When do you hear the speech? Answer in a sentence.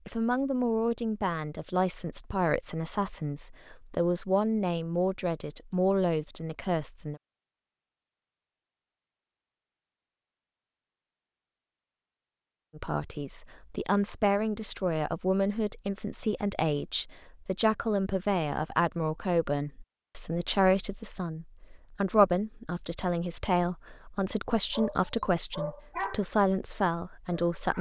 The speech can be heard from 0.1 to 7.2 s and from 12.8 to 27.7 s.